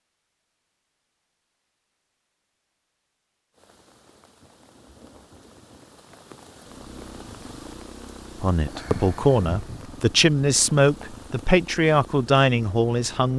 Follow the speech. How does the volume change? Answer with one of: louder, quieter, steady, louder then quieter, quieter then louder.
steady.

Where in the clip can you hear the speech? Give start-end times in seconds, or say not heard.
8.3-13.3.